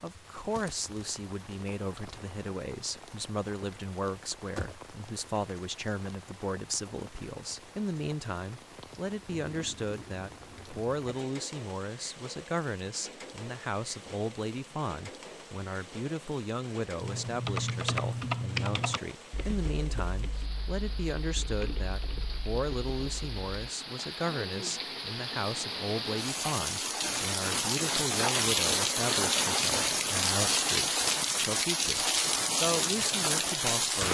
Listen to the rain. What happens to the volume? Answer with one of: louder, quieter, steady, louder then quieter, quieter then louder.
louder.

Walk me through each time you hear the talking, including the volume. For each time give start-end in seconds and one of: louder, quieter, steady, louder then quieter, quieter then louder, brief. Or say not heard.
0.0-34.0 steady.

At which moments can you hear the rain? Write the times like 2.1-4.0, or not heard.
0.0-34.0.